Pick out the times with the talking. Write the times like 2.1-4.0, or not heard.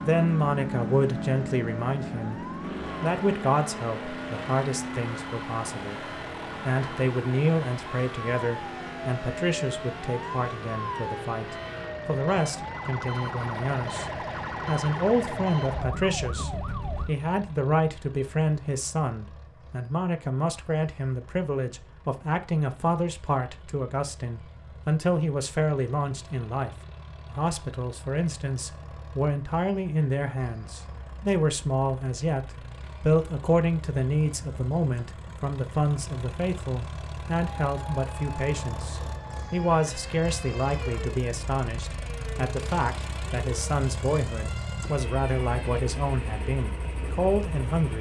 0.0-6.0, 6.7-47.9.